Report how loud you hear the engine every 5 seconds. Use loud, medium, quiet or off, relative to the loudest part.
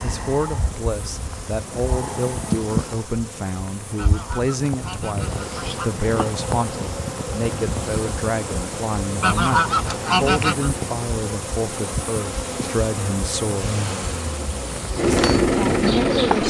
off, off, quiet, loud.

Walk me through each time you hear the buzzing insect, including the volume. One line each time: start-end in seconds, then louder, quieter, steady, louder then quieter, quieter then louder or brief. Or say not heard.
0.0-16.4 steady.